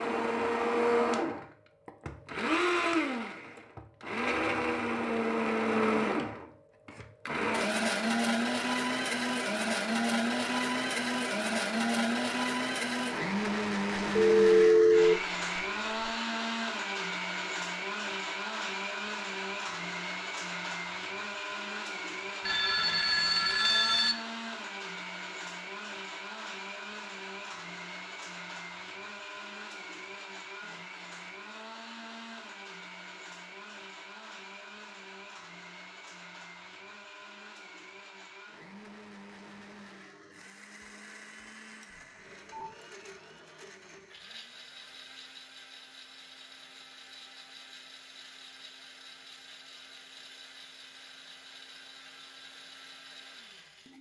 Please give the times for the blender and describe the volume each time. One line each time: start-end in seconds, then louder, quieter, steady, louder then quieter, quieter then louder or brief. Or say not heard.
0.0-53.9 quieter.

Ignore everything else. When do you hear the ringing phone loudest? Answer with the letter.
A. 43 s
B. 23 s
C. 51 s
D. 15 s
D.